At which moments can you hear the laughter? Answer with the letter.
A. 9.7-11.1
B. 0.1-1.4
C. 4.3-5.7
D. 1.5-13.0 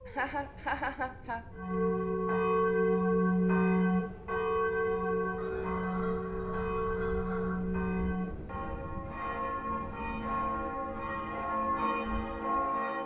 B.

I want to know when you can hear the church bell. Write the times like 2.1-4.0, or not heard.
1.5-13.0.